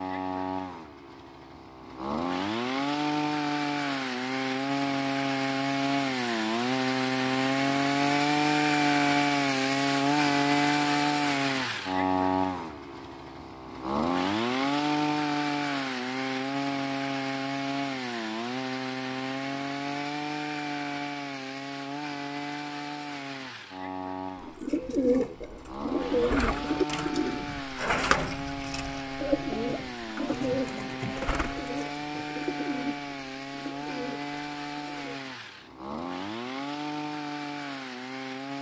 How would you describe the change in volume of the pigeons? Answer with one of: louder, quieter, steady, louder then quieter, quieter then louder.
quieter.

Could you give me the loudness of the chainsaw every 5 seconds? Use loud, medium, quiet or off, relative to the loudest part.
medium, loud, loud, medium, medium, medium, medium, medium.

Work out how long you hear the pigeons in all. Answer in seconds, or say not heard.
11 s.